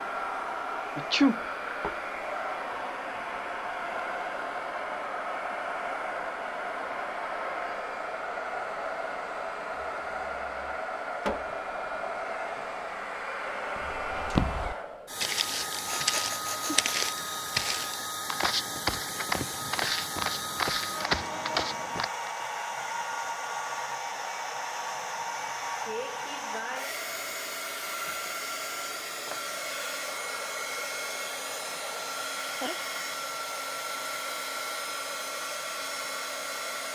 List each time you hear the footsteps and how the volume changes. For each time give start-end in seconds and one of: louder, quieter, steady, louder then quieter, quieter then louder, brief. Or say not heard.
13.8-22.4 steady.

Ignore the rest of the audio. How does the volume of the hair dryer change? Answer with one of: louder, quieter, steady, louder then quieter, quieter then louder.
steady.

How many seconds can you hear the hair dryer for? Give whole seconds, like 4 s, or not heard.
37 s.